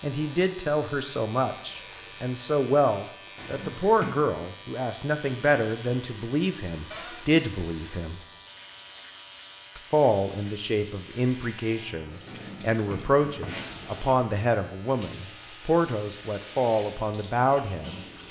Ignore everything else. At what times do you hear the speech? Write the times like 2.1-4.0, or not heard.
0.0-8.2, 9.8-18.0.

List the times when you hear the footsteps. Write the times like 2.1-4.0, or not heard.
not heard.